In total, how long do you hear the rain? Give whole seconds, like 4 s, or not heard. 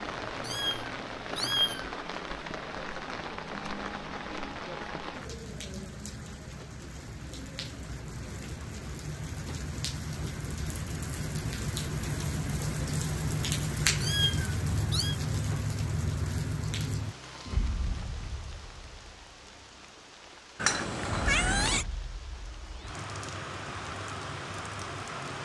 25 s.